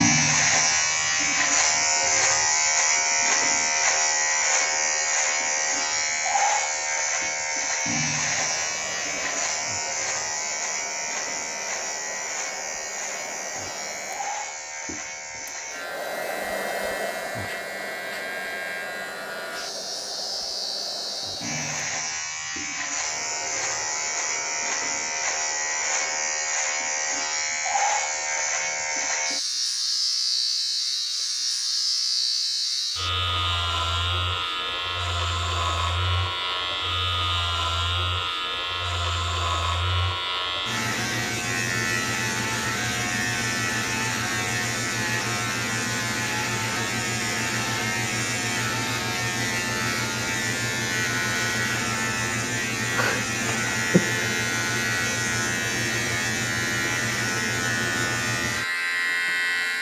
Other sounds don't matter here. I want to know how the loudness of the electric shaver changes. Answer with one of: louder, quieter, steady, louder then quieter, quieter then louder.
quieter then louder.